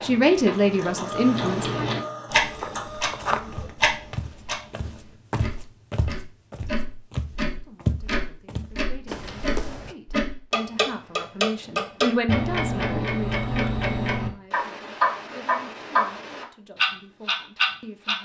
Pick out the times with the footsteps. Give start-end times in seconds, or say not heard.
2.4-9.9.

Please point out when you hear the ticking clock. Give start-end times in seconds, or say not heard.
0.0-18.1.